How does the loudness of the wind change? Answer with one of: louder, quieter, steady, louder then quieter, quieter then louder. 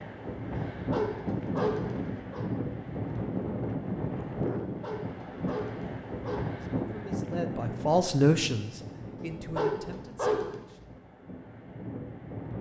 quieter.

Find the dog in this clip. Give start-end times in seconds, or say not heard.
0.8-2.5, 4.7-6.5, 9.2-10.8.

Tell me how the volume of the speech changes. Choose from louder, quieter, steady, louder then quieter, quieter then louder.
louder then quieter.